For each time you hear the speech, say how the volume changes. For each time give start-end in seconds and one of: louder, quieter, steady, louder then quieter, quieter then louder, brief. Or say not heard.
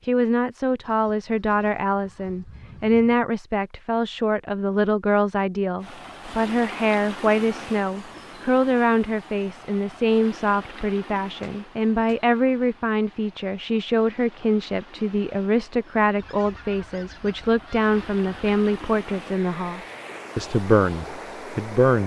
0.1-22.0 steady.